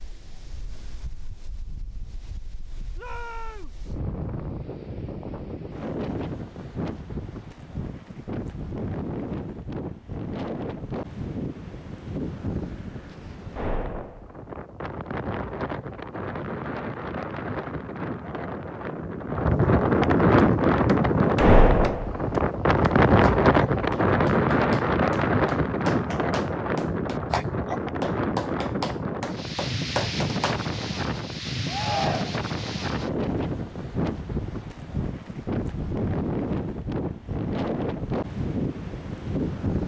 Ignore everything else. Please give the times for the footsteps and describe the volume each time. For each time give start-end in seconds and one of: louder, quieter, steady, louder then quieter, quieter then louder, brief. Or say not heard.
not heard.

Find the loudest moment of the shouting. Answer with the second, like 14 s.
32 s.